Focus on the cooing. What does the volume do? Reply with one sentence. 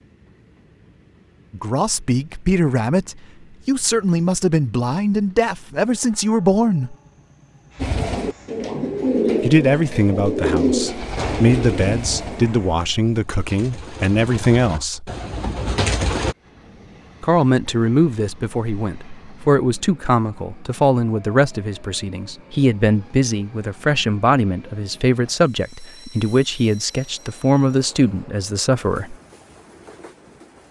The volume of the cooing goes down, then up.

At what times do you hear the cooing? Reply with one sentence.
The cooing can be heard from 7.8 to 16.4 s.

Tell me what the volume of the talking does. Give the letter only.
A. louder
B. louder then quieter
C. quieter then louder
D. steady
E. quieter
D.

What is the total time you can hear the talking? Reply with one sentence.
You can hear the talking for 23 seconds altogether.